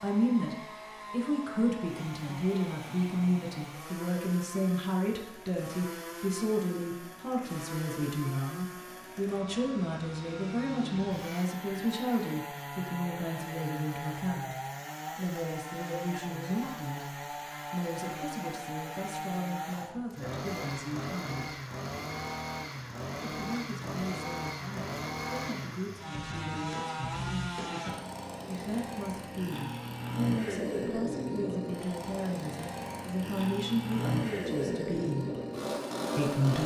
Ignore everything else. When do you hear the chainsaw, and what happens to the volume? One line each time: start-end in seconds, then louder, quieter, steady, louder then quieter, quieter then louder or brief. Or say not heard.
0.0-36.6 louder.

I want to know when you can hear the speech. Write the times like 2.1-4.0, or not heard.
0.0-14.6, 15.2-21.6, 23.3-27.4, 28.4-35.3, 36.1-36.6.